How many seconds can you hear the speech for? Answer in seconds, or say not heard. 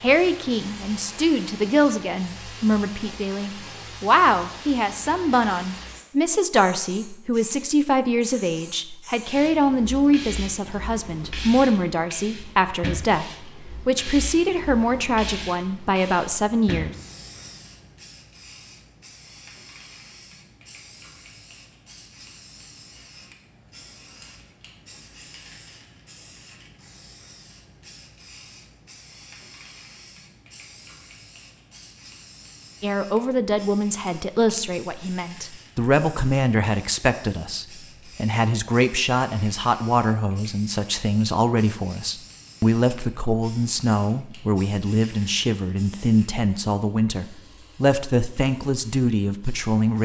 34 s.